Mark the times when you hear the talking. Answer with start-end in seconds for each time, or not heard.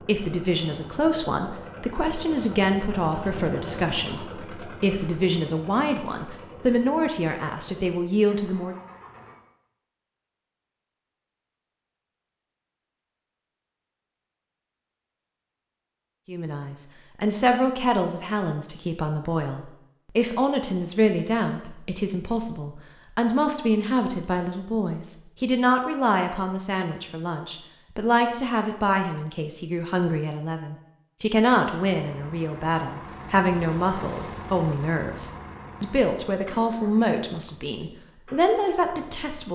0.0-8.8, 16.2-39.4.